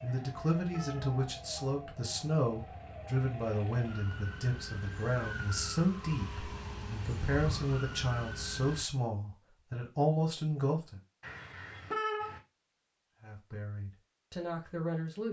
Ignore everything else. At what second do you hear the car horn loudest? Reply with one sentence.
The volume of the car horn peaks at 12 seconds.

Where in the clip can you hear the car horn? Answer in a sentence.
You can hear the car horn from 0.1 to 1.2 s, from 7.2 to 7.7 s and from 11.2 to 12.4 s.